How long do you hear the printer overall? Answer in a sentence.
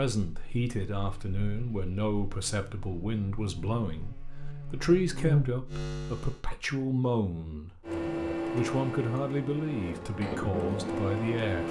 The printer can be heard for 4 seconds in total.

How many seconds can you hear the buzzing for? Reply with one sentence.
The buzzing can be heard for 6 seconds in total.